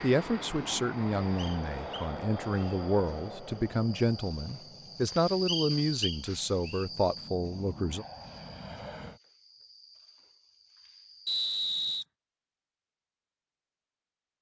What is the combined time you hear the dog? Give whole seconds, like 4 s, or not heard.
not heard.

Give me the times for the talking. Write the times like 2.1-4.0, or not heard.
0.0-8.1.